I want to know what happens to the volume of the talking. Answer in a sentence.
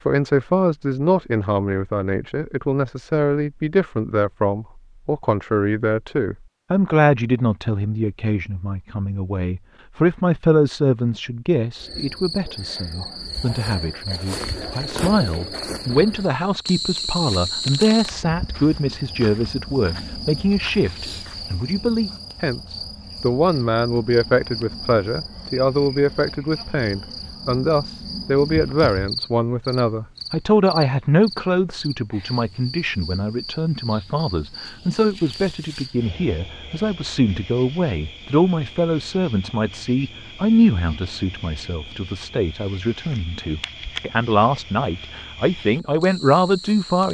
The loudness of the talking stays about the same.